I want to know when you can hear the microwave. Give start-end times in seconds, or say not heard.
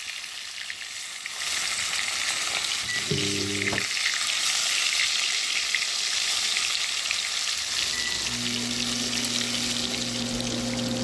2.7-3.9, 7.7-10.9.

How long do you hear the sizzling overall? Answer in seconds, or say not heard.
11 s.